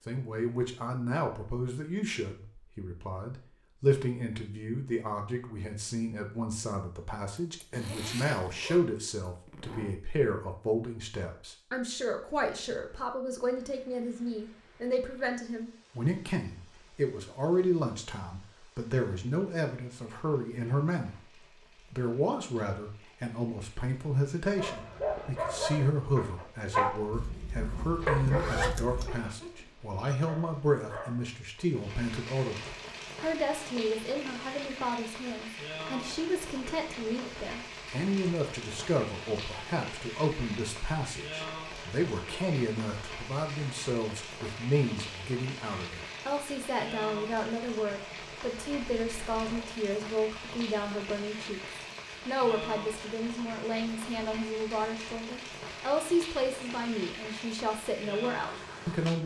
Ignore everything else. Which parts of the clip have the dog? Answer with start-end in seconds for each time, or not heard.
24.6-27.1, 27.9-31.3.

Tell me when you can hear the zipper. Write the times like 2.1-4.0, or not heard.
7.6-9.9, 27.1-29.1, 49.0-49.8.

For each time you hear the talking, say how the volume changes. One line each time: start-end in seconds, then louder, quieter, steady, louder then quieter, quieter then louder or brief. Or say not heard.
0.1-59.2 steady.